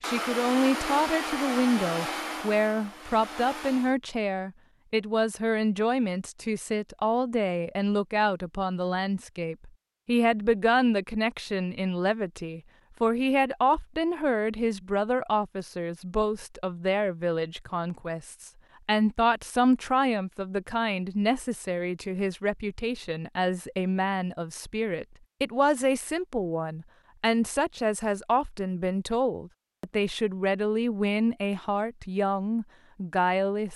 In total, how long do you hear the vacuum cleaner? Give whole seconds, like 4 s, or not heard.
4 s.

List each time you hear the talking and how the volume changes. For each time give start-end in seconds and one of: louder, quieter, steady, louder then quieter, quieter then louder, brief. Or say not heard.
0.0-33.7 steady.